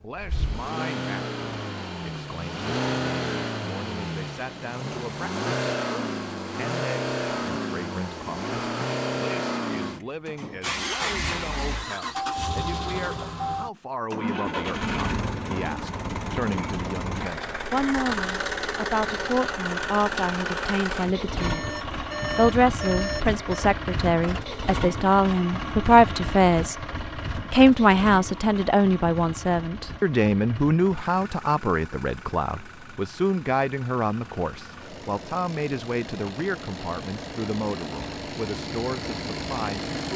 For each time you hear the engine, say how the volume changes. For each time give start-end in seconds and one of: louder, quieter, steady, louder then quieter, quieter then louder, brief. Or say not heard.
0.1-40.1 quieter.